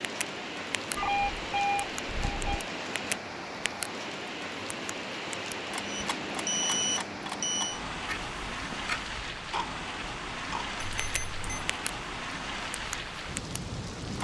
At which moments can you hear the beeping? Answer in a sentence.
The beeping can be heard from 0.9 to 2.6 s, from 5.8 to 7.8 s and from 10.8 to 11.6 s.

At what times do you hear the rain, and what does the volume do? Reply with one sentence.
The rain can be heard from 0.0 to 14.1 s, at a steady volume.